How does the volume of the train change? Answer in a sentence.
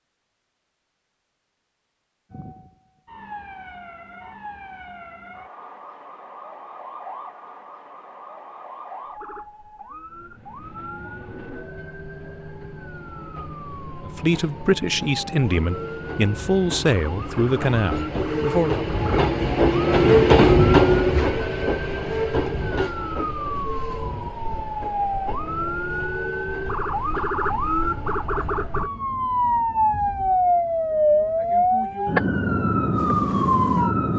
The volume of the train goes up, then down.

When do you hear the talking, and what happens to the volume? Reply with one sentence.
The talking can be heard from 14.1 to 18.9 s, at a steady volume.